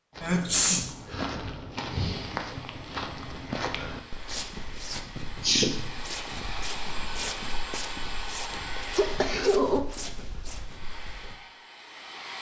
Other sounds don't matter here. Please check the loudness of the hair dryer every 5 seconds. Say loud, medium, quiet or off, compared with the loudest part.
medium, loud, medium.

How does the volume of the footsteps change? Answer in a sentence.
The loudness of the footsteps goes down.